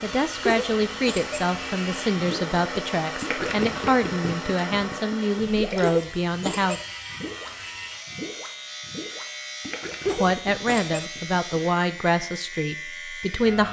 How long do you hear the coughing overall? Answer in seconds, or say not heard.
3 s.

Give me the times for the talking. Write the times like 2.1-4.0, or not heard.
0.0-6.8, 10.2-13.6.